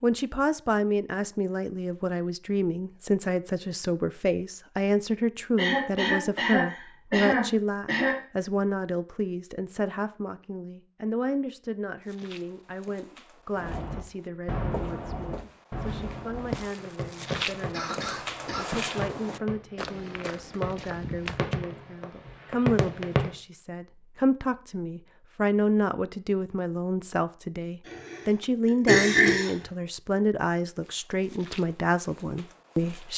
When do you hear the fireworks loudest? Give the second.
23 s.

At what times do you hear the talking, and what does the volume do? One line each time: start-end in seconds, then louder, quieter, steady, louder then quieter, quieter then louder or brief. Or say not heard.
0.0-33.1 quieter then louder.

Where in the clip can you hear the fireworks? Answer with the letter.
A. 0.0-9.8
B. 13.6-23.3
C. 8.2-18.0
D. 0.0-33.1
B.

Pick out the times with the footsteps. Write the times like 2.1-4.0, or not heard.
12.0-21.6, 30.8-33.1.